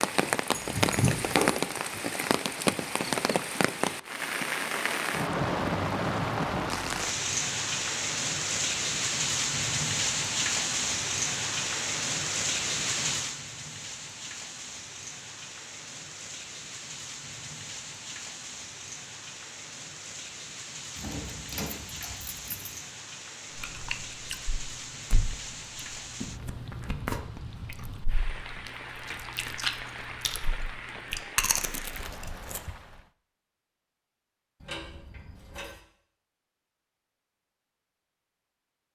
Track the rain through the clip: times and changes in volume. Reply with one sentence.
You can hear the rain from 0.0 to 33.1 s, getting quieter.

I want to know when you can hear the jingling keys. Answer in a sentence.
The jingling keys can be heard from 0.5 to 1.6 s, from 20.9 to 22.8 s and from 34.6 to 35.8 s.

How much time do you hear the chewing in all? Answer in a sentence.
You can hear the chewing for 9 seconds altogether.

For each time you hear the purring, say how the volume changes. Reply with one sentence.
The purring can't be heard in this clip.